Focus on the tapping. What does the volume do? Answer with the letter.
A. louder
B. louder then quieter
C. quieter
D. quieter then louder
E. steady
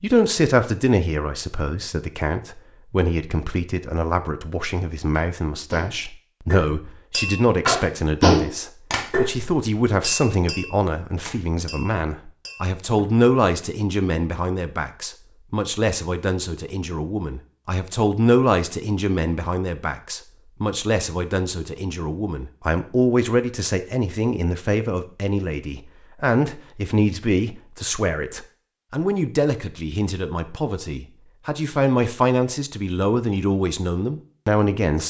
B.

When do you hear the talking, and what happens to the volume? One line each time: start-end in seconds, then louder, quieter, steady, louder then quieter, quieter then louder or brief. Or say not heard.
0.0-35.0 steady.